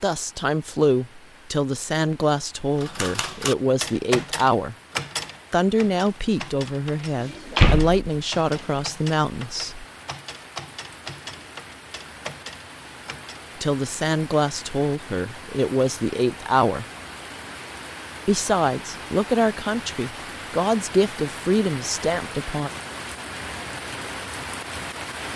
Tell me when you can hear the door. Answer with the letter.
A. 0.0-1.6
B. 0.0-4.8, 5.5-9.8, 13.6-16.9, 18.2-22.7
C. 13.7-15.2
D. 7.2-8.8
D.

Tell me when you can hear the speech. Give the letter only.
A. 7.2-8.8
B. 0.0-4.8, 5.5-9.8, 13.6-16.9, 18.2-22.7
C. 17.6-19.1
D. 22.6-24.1
B.